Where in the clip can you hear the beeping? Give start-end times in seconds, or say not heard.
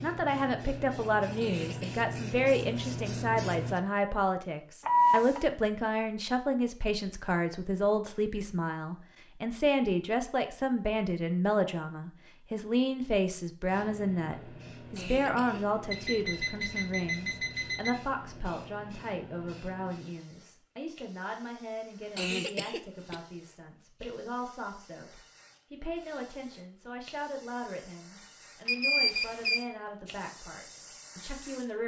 4.8-5.5, 15.9-17.9, 28.6-29.6.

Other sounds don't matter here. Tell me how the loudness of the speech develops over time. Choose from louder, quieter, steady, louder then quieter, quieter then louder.
quieter.